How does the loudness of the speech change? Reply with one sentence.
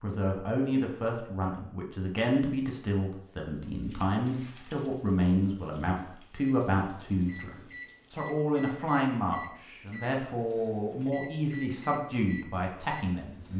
The loudness of the speech stays about the same.